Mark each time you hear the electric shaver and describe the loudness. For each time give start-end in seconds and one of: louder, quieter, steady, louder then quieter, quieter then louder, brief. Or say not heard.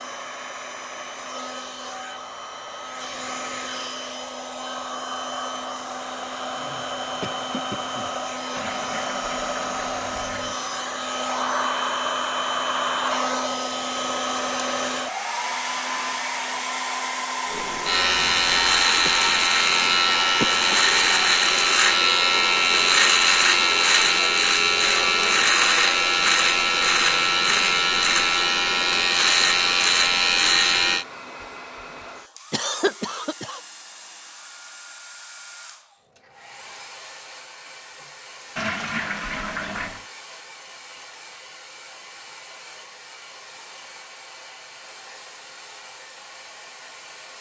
17.5-31.1 steady.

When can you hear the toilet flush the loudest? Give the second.
39 s.